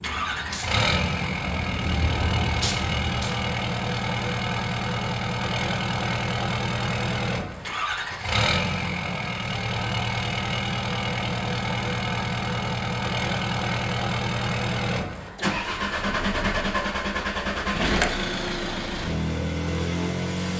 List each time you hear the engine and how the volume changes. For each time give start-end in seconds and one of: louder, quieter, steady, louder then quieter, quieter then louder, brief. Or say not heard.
0.0-20.5 steady.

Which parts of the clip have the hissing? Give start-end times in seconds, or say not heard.
0.0-3.5.